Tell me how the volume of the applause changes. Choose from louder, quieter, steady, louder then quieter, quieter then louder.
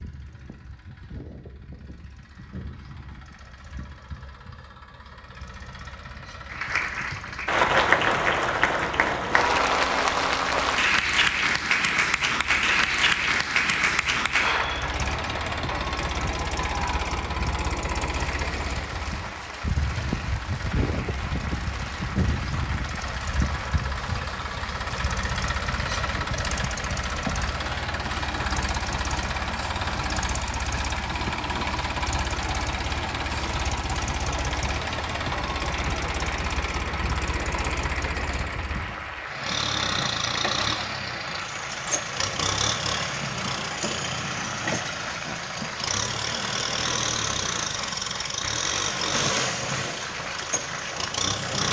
quieter.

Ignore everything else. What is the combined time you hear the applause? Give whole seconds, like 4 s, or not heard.
45 s.